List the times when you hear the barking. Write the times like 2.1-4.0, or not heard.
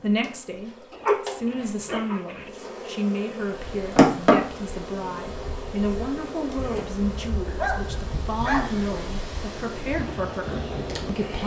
0.9-2.5, 7.0-8.8.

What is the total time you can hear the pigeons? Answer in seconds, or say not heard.
not heard.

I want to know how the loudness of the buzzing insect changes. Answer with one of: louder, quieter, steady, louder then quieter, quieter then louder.
louder then quieter.